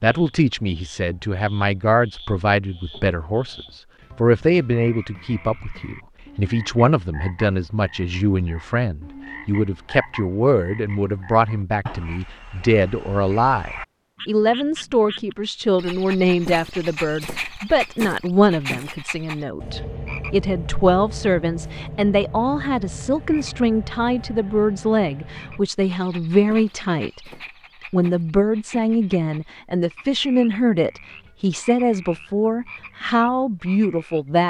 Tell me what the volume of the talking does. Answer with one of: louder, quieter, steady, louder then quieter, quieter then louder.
steady.